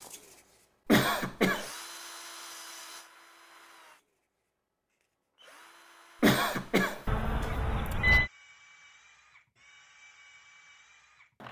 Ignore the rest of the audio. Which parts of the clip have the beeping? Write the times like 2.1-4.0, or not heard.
7.0-8.3.